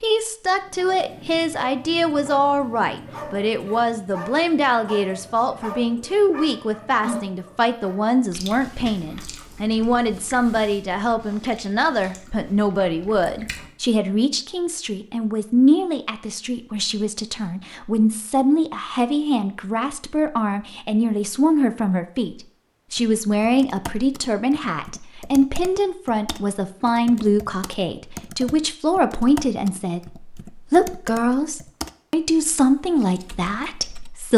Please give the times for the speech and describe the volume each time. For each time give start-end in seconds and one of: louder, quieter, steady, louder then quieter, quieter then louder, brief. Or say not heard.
0.0-34.3 steady.